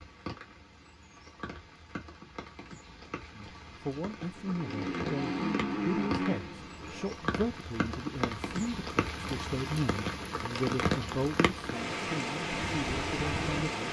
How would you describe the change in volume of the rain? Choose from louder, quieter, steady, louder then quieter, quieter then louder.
louder.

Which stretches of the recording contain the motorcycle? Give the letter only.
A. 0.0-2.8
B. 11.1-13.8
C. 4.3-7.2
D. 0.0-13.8
C.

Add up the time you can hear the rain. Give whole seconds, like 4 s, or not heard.
14 s.